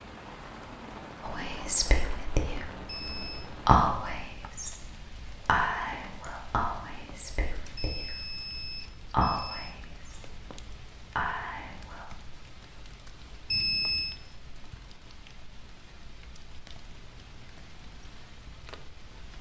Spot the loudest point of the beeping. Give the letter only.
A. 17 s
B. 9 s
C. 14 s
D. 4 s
C.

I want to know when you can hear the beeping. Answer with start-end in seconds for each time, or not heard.
2.9-3.5, 7.8-9.8, 13.5-14.2.